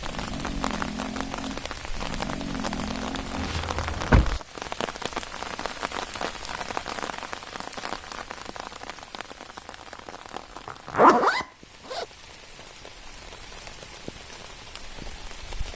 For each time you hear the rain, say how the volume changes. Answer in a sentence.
The rain can be heard from 0.0 to 15.7 s, getting quieter.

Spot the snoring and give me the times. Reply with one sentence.
The snoring can be heard from 0.0 to 4.3 s.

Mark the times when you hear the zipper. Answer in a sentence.
The zipper can be heard from 3.4 to 4.4 s and from 10.7 to 12.1 s.